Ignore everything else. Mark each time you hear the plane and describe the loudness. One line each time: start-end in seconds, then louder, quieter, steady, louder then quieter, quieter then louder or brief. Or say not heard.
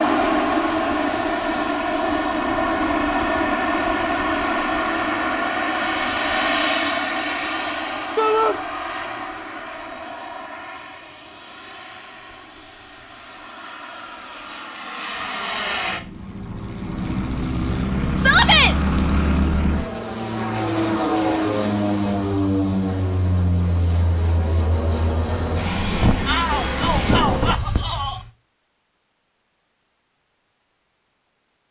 0.0-28.3 quieter then louder.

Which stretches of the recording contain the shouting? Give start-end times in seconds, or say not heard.
8.2-8.6, 18.1-18.8, 26.2-28.2.